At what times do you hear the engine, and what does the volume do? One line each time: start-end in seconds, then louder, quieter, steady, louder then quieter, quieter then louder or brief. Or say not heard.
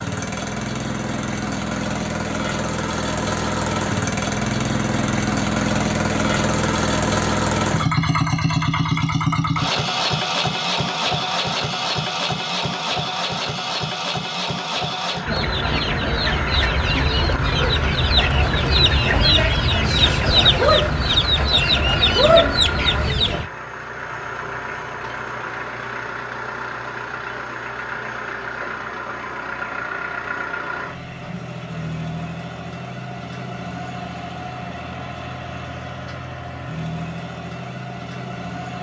0.0-38.7 quieter.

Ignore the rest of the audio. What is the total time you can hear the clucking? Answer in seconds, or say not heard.
8 s.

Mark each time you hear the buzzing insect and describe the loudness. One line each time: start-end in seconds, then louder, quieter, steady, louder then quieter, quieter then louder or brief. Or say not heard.
not heard.